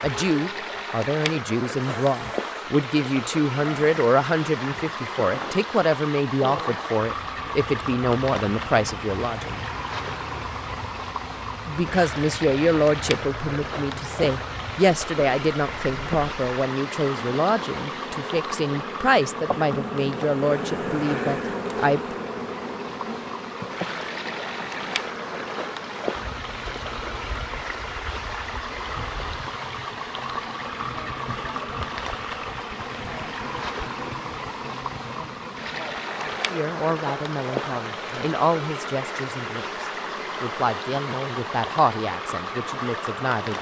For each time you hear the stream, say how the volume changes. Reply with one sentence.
You can hear the stream from 0.0 to 43.5 s, at a steady volume.